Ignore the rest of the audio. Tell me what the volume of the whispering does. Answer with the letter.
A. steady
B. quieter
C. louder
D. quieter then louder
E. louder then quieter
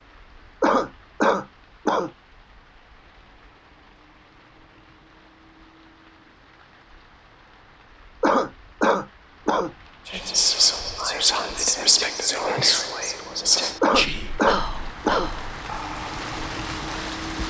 B.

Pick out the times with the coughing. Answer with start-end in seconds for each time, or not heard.
0.6-2.1, 8.2-9.7, 13.8-15.3.